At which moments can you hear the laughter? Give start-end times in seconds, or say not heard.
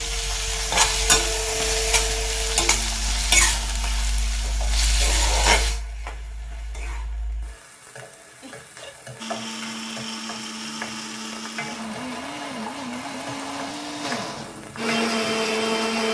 8.4-8.9.